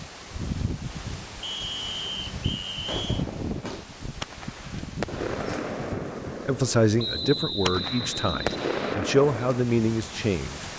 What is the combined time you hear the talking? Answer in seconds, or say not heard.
4 s.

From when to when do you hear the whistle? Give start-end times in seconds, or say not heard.
1.4-3.2, 7.0-8.9.